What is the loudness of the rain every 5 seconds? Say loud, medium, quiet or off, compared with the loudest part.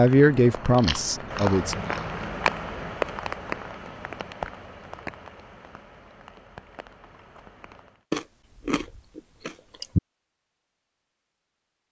loud, quiet, off.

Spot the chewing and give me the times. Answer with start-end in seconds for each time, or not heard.
0.8-2.2, 8.1-10.0.